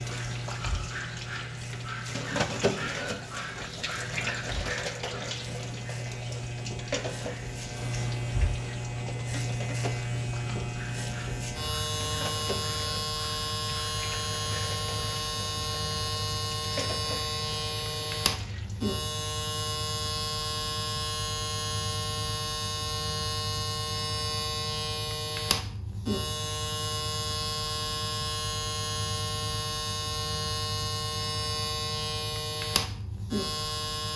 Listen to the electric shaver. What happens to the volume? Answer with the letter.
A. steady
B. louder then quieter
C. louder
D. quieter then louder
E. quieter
C.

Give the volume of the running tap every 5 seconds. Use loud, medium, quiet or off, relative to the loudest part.
loud, medium, medium, medium, off, off, off.